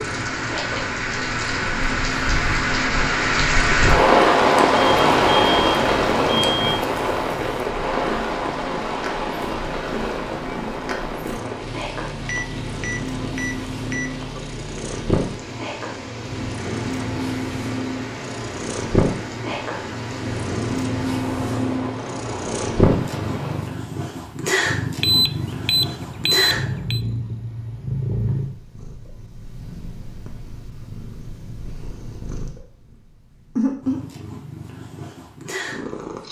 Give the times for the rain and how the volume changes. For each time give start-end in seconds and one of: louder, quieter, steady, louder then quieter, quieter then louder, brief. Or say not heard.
0.0-23.8 quieter.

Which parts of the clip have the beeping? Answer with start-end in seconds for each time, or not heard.
4.8-6.8, 12.2-14.4, 25.0-27.0.